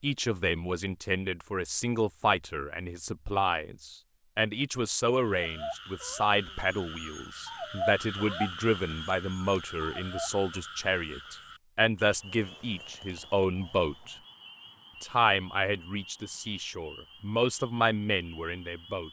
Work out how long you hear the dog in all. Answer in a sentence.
The dog can be heard for 5 seconds in total.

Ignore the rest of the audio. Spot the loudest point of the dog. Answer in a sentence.
The volume of the dog peaks at 8 seconds.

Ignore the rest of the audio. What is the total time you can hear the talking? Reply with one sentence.
The talking can be heard for 18 seconds in total.